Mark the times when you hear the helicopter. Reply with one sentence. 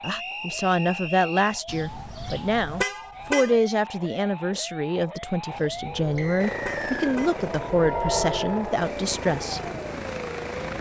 You can hear the helicopter from 6.3 to 10.7 s.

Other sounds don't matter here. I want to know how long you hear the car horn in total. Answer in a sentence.
You can hear the car horn for 4 seconds altogether.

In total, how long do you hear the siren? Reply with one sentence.
The siren can be heard for 11 seconds in total.